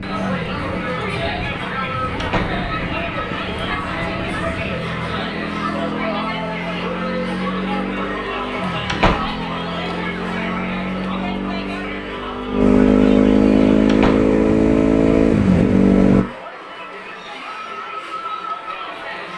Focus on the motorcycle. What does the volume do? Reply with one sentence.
The volume of the motorcycle goes up.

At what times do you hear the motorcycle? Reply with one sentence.
You can hear the motorcycle from 0.0 to 16.2 s.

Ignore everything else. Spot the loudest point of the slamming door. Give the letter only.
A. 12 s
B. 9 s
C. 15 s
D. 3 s
B.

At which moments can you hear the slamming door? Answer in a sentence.
You can hear the slamming door from 2.2 to 2.6 s, from 8.8 to 9.3 s and from 13.8 to 14.3 s.